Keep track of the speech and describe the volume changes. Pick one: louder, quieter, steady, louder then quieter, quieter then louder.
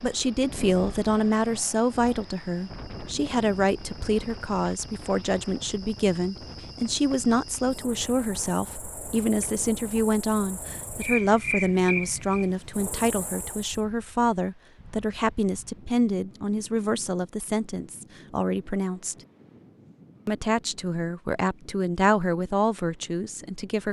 steady.